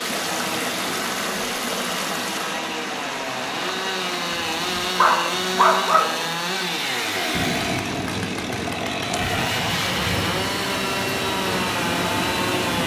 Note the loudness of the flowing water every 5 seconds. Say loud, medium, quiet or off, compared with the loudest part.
loud, medium, loud.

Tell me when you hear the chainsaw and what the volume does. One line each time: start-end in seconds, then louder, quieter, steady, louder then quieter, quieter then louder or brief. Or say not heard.
0.0-12.8 louder.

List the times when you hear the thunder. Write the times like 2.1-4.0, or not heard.
7.3-10.3.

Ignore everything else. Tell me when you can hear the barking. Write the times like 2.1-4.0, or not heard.
4.5-6.2.